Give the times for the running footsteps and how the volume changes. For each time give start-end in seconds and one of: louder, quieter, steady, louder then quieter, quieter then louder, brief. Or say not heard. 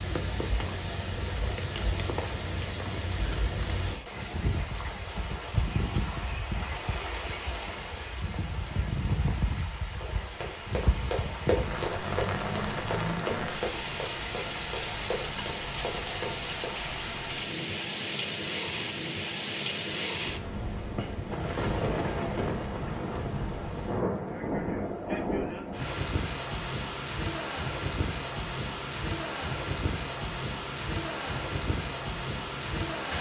10.0-16.8 quieter.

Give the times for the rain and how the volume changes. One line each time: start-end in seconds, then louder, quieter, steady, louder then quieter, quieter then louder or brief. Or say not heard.
0.0-33.1 steady.